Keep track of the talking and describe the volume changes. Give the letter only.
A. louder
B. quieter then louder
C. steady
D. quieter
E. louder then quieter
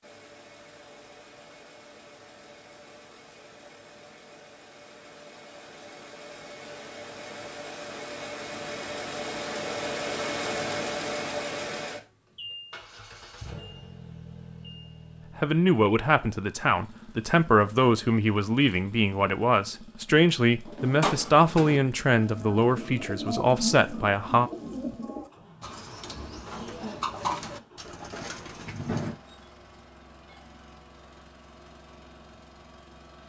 C.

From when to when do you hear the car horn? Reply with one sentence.
You can't hear the car horn here.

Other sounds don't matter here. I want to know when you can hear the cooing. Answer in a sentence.
The cooing can be heard from 20.6 to 29.2 s.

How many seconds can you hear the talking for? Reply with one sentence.
The talking can be heard for 9 seconds in total.